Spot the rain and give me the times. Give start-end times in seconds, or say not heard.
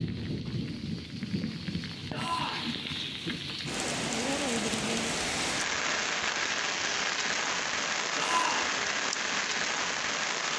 0.0-10.5.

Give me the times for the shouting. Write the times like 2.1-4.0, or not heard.
2.1-2.8, 8.2-8.8.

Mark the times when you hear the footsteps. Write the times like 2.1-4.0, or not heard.
not heard.